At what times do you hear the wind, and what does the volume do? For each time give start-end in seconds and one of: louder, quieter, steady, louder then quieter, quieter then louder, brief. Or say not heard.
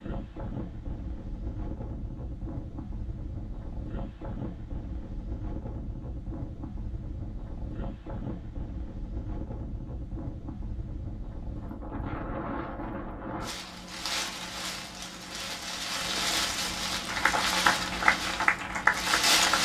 0.0-19.5 louder.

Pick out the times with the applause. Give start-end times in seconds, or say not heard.
17.1-19.5.